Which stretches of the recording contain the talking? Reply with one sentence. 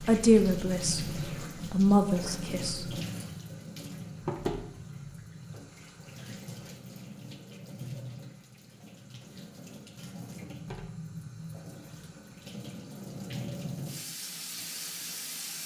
The talking can be heard from 0.0 to 2.9 s.